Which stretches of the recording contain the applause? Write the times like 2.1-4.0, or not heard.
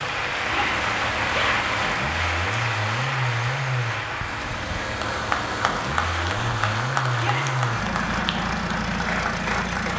0.0-9.9.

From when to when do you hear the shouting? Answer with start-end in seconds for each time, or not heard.
0.5-1.6, 7.2-7.6.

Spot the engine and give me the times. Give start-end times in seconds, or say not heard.
0.0-9.9.